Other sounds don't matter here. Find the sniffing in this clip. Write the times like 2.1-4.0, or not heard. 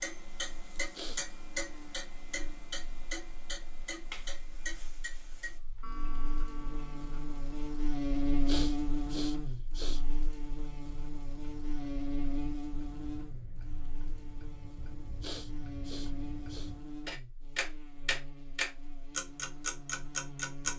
0.8-1.2, 8.2-10.2, 15.0-16.7.